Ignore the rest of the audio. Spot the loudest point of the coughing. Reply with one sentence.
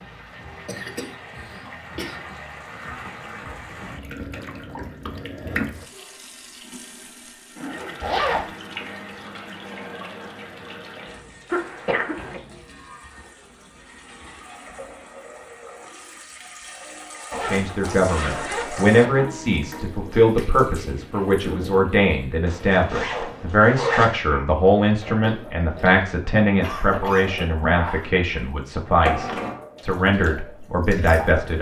The loudest moment of the coughing is at 12 seconds.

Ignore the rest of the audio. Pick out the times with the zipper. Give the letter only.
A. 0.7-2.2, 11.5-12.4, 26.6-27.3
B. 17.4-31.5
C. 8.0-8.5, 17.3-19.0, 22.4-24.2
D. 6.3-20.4
C.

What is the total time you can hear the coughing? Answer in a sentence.
You can hear the coughing for 3 seconds altogether.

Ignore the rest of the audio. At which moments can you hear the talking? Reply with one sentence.
The talking can be heard from 17.4 to 31.5 s.